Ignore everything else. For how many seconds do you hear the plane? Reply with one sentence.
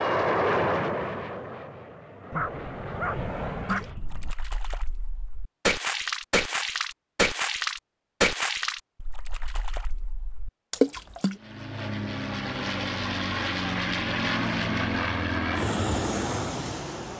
The plane can be heard for 10 seconds in total.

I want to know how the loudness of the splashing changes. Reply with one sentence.
The loudness of the splashing goes up.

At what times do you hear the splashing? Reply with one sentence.
You can hear the splashing from 3.6 to 11.3 s.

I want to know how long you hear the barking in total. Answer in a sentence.
The barking can be heard for 2 seconds in total.